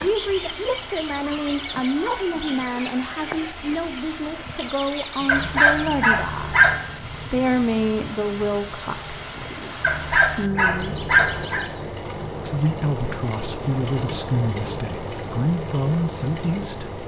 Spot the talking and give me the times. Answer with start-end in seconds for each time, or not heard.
0.0-11.0, 12.3-17.0.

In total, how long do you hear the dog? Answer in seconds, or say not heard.
3 s.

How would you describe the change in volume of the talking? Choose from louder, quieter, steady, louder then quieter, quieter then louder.
steady.